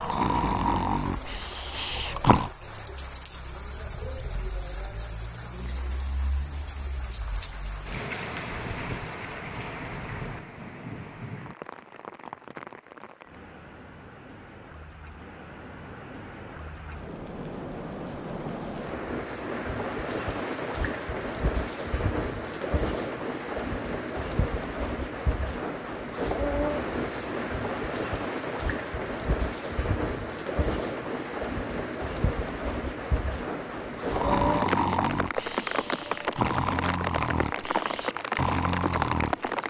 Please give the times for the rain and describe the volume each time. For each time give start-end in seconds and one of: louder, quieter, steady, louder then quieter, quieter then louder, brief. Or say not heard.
0.0-39.6 louder.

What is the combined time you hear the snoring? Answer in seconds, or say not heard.
8 s.